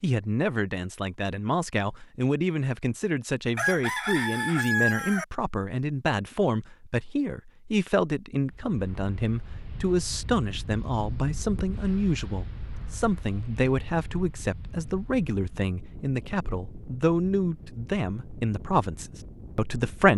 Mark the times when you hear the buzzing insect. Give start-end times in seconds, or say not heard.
not heard.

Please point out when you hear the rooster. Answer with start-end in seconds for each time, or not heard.
3.5-5.2.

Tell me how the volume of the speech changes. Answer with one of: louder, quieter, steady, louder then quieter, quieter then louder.
steady.